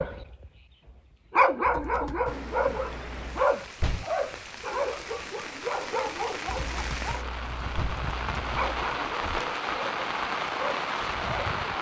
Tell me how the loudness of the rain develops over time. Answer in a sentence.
The loudness of the rain goes up.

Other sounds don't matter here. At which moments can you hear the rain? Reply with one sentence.
You can hear the rain from 2.2 to 11.7 s.